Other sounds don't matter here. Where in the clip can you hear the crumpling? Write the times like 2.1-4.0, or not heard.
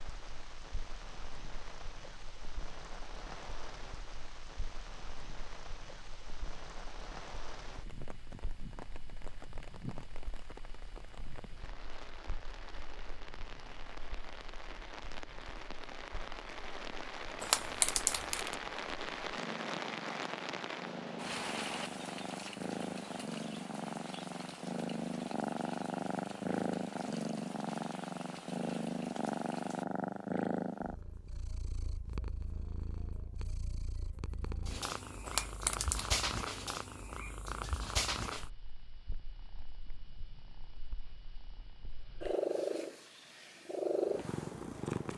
17.4-18.6, 35.2-36.1.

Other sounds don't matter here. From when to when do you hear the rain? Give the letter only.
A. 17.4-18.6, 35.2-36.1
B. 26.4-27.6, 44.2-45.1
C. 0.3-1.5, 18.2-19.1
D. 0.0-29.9
D.